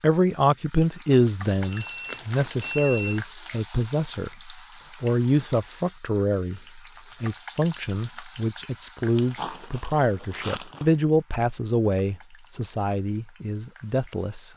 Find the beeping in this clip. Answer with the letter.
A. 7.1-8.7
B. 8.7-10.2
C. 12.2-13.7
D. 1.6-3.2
D.